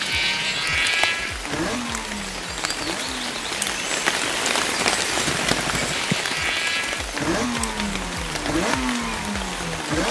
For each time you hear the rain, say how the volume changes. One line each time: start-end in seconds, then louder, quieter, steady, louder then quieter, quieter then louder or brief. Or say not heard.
0.0-10.0 louder then quieter.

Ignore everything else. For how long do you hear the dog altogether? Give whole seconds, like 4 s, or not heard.
not heard.